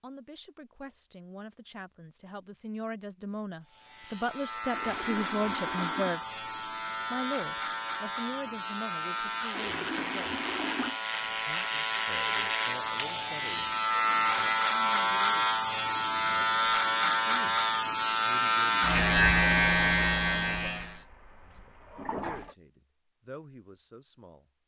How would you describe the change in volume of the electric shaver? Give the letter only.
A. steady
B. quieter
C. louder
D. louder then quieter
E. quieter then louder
C.